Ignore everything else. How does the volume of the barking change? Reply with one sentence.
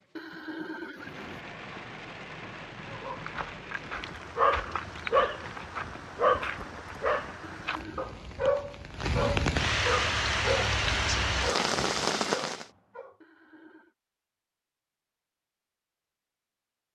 The loudness of the barking goes down.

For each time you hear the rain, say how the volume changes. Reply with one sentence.
You can hear the rain from 0.0 to 12.7 s, getting louder.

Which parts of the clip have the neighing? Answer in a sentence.
You can hear the neighing from 0.1 to 1.4 s, from 7.4 to 8.2 s and from 13.2 to 13.9 s.